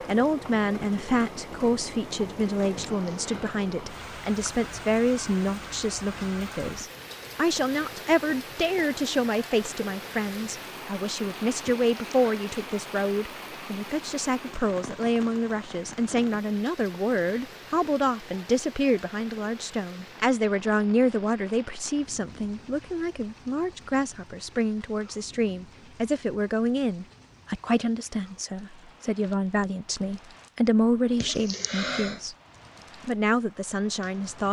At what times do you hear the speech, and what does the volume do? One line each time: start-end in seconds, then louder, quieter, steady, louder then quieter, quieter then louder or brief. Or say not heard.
0.1-32.4 steady
33.0-34.4 brief.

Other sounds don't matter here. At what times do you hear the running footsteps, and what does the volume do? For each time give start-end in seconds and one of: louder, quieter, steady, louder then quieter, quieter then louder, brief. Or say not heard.
not heard.